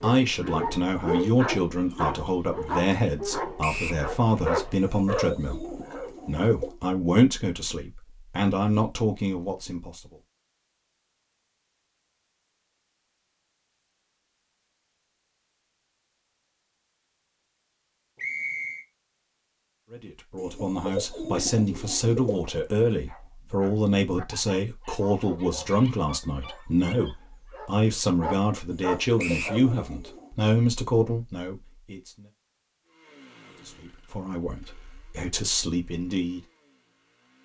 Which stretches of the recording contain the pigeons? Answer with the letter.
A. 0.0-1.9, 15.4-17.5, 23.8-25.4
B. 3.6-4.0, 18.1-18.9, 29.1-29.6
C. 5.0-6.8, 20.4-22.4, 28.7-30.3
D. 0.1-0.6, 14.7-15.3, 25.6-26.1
C.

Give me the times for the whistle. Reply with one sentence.
The whistle can be heard from 3.6 to 4.0 s, from 18.1 to 18.9 s and from 29.1 to 29.6 s.